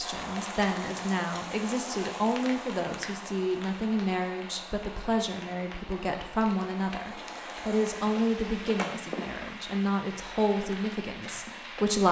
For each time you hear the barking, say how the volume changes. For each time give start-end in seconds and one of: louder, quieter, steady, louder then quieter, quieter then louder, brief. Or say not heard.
not heard.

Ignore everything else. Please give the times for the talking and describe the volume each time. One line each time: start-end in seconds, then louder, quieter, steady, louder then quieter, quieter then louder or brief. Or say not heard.
0.0-12.0 steady.